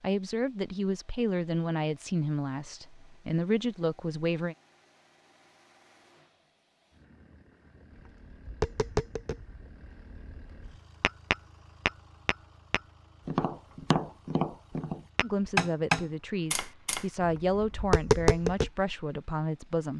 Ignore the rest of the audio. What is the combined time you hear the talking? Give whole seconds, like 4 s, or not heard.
9 s.